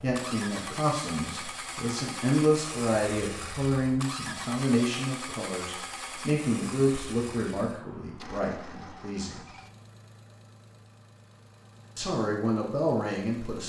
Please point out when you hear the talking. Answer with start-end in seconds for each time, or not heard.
0.0-9.4, 11.9-13.6.